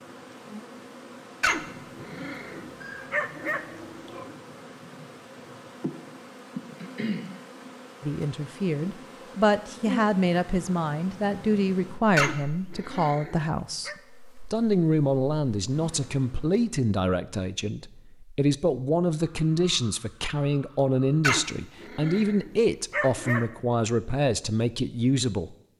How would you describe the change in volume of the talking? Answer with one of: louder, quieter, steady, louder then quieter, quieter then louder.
steady.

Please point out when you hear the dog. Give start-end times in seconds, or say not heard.
1.4-4.3, 12.2-13.9, 21.2-23.5.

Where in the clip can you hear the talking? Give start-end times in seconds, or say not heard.
8.0-13.9, 14.5-25.7.